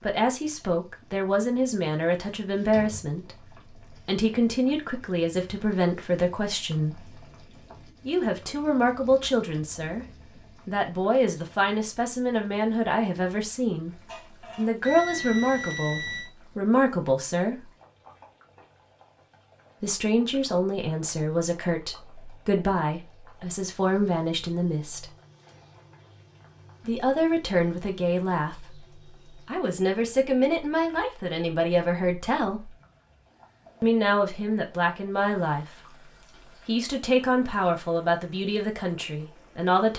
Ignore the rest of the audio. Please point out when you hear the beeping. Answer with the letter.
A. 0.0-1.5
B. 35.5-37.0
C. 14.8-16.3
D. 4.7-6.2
C.